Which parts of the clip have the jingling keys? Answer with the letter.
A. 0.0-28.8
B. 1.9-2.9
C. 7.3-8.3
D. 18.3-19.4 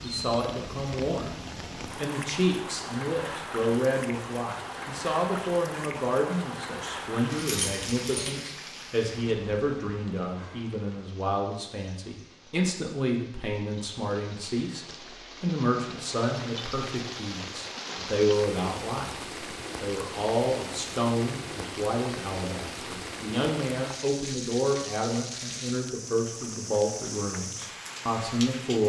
C.